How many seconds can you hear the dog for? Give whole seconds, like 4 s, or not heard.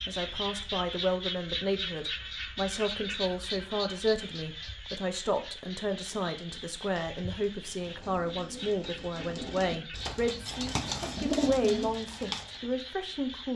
not heard.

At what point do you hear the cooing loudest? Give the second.
11 s.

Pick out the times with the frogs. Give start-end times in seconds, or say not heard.
0.0-13.5.